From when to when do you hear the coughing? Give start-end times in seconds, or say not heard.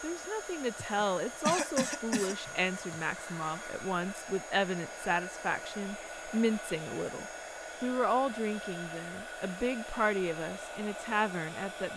0.8-3.0.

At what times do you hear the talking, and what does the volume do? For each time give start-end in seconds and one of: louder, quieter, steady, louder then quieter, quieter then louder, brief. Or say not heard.
0.0-11.9 steady.